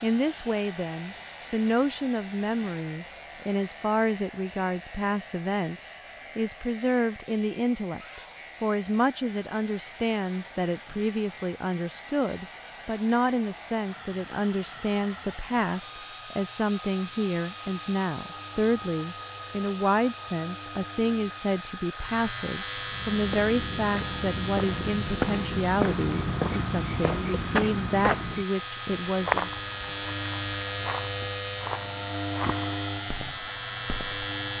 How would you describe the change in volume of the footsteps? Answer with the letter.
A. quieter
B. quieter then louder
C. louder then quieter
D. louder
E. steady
C.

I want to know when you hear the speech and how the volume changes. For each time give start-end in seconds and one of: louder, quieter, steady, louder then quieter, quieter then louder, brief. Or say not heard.
0.0-29.5 steady.